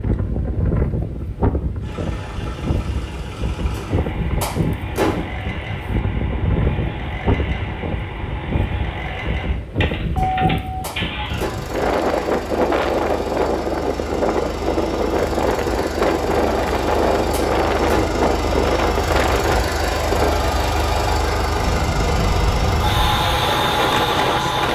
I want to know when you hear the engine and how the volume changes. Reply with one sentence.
The engine can be heard from 1.8 to 24.6 s, getting louder.